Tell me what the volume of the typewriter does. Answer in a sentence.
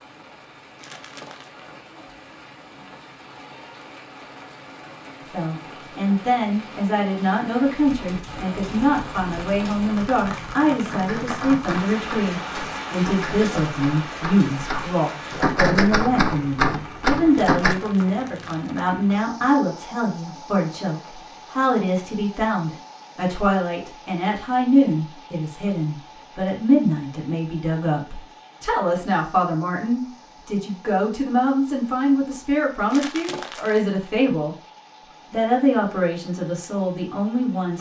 The volume of the typewriter goes up.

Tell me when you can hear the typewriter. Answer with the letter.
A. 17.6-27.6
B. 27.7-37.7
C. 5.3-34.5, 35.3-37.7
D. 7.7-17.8
D.